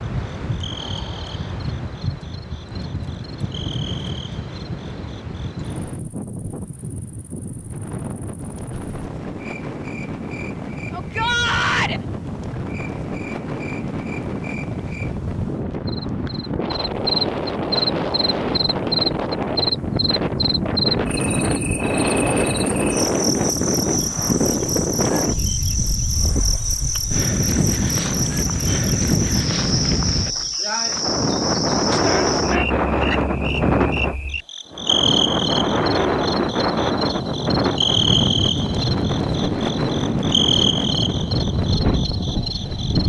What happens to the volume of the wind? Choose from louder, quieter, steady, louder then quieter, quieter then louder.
louder.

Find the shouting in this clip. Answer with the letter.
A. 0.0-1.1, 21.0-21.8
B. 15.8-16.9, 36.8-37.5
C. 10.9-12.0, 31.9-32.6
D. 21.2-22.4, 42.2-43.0
C.